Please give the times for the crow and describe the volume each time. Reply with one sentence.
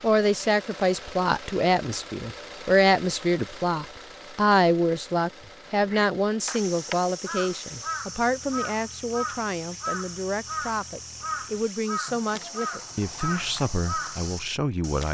The crow can be heard from 5.4 to 15.0 s, at a steady volume.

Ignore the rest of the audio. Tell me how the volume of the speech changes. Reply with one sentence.
The loudness of the speech goes down.